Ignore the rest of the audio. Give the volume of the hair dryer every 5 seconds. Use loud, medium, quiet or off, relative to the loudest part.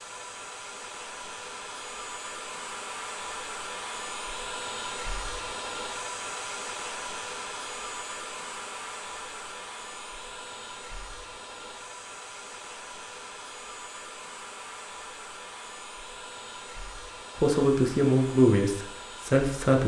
loud, loud, medium, medium.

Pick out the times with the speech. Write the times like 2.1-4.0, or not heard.
17.4-19.8.